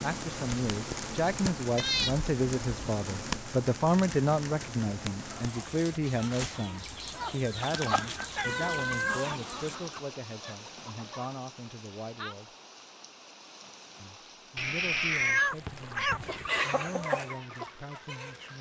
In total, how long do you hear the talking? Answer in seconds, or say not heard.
17 s.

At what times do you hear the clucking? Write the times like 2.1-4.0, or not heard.
5.2-11.3, 16.2-18.5.